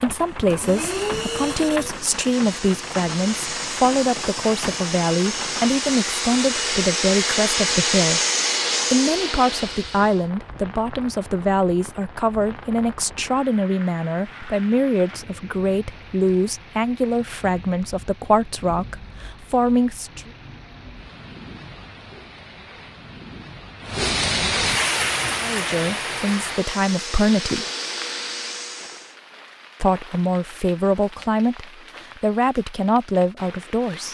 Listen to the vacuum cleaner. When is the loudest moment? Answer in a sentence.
The loudest moment of the vacuum cleaner is at 8 seconds.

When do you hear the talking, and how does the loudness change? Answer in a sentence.
You can hear the talking from 0.0 to 8.2 s, at a steady volume; from 8.9 to 20.3 s, at a steady volume; briefly from 25.4 to 27.6 s; and from 29.8 to 34.0 s, getting quieter then louder.